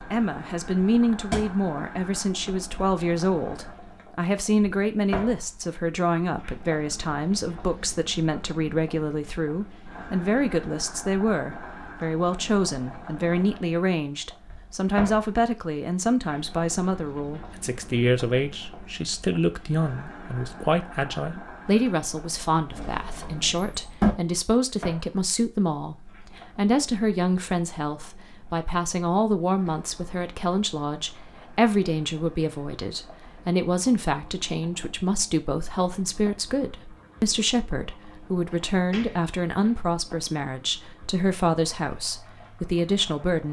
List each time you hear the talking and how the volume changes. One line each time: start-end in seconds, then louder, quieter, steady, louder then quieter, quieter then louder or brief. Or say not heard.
0.1-43.4 steady.